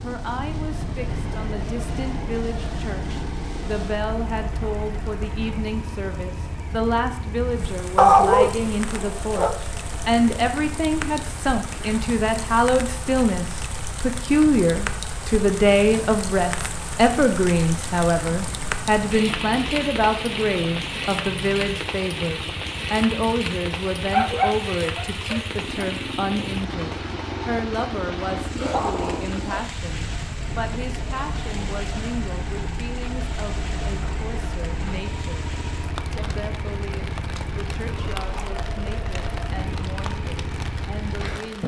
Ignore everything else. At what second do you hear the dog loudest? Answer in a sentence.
The volume of the dog peaks at 8 seconds.